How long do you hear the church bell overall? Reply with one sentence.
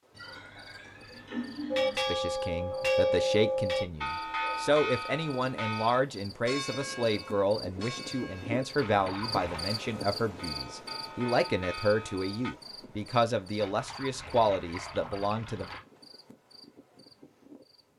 You can hear the church bell for 11 seconds altogether.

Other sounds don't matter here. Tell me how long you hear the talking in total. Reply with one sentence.
You can hear the talking for 14 seconds altogether.